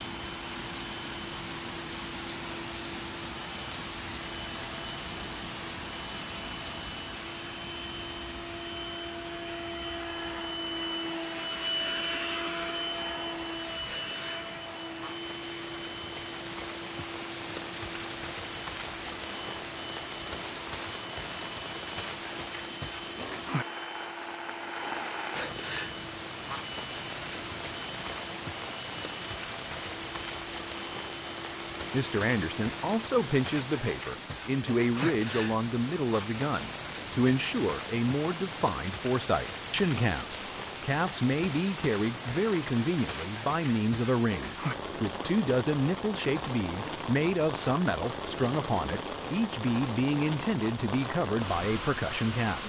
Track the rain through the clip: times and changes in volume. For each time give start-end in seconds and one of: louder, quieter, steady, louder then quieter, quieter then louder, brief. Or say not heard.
0.0-52.6 steady.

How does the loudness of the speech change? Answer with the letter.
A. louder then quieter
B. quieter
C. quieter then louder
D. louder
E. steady
E.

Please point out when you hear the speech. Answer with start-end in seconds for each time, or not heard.
31.9-52.6.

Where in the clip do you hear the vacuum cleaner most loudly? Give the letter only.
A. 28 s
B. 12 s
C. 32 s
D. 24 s
B.